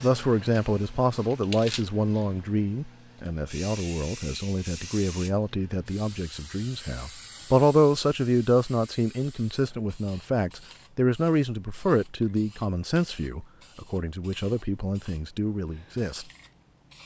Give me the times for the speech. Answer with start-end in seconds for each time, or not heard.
0.0-16.2.